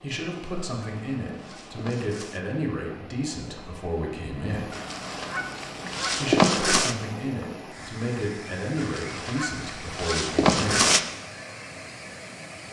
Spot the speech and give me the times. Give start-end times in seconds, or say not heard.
0.0-4.7, 6.2-10.8.